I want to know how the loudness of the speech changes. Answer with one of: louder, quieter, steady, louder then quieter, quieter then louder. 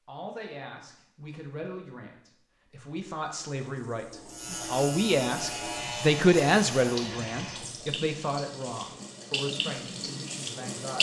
louder then quieter.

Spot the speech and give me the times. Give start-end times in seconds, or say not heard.
0.1-10.9.